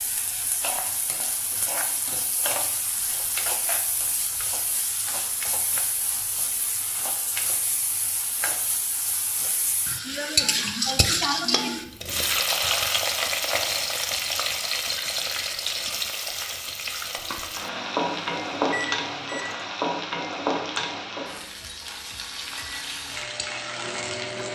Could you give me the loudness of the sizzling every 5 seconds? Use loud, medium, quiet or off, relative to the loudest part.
medium, medium, loud, loud, medium.